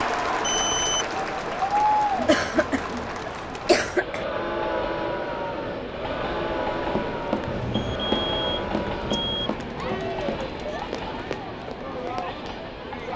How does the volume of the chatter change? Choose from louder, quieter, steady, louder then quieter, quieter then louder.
quieter.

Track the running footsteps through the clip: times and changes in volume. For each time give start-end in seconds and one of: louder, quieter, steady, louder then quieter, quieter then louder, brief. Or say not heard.
6.8-12.6 quieter.